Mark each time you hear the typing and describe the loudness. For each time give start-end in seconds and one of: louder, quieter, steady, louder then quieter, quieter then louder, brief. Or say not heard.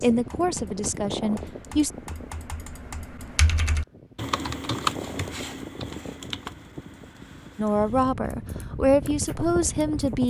0.0-10.2 louder then quieter.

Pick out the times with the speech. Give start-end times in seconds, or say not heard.
0.0-1.9, 7.5-10.2.